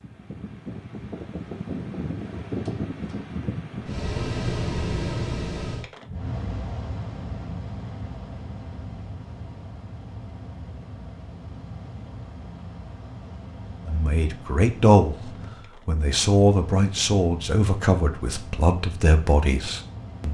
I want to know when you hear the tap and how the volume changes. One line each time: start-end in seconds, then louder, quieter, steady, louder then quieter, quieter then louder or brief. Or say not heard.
not heard.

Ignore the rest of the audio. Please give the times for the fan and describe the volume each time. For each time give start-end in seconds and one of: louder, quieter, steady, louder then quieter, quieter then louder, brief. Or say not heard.
0.0-20.2 quieter.